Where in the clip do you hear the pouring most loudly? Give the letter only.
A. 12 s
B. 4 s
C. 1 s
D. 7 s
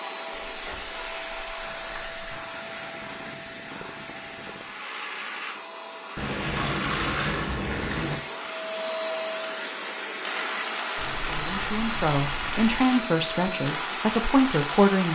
D.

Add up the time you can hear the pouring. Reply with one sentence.
You can hear the pouring for 6 seconds altogether.